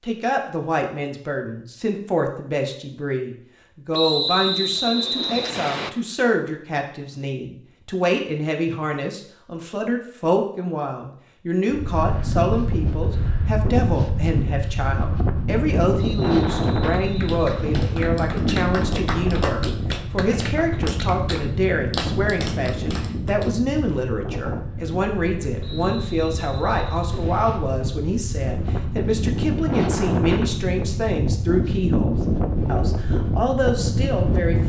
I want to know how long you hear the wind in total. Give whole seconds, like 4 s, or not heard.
23 s.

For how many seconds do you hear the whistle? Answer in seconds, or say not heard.
6 s.